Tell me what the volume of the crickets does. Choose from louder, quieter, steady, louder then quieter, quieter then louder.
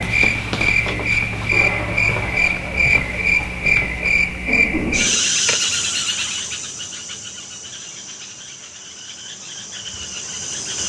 quieter.